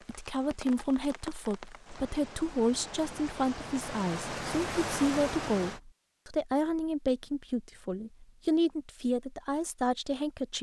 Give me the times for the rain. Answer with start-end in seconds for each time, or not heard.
0.0-5.8.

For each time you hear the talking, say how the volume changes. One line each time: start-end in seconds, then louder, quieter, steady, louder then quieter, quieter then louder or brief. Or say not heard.
0.1-10.5 steady.